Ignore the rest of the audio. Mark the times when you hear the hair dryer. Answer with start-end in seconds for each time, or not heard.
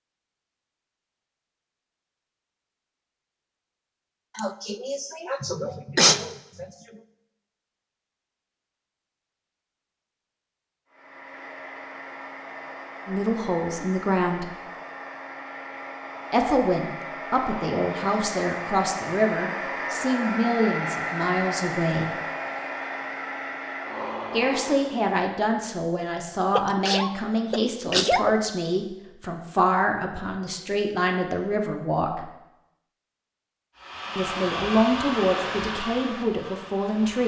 10.8-25.1, 33.8-37.2.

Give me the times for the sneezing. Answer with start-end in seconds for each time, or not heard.
4.3-7.0, 26.6-28.4.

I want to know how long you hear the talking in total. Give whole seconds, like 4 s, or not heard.
18 s.